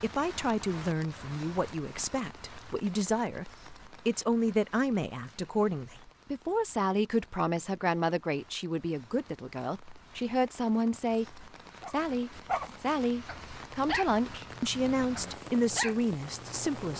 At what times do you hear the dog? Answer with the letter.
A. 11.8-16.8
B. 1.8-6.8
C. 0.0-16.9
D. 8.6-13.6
A.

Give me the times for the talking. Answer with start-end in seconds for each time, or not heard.
0.0-16.9.